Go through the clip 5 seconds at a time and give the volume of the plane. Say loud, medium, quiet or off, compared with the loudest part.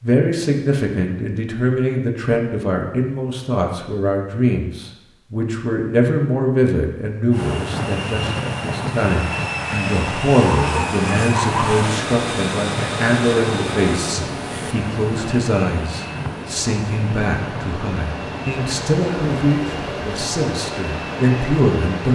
off, loud, loud, medium, medium.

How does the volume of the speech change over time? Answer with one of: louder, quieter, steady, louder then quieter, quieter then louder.
steady.